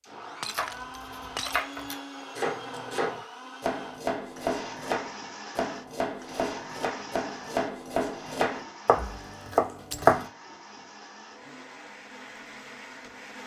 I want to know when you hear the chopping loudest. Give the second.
10 s.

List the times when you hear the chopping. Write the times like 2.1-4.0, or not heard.
0.5-10.2.